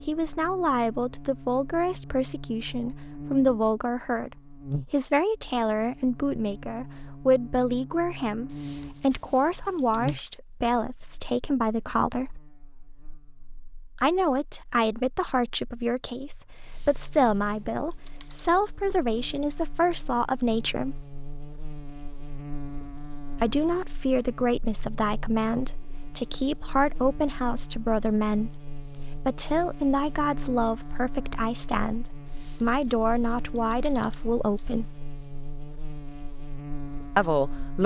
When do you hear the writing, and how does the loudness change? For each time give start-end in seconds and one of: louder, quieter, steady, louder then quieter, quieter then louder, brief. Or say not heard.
not heard.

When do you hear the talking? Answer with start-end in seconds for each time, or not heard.
0.1-12.4, 14.0-21.1, 23.4-35.0, 37.1-37.8.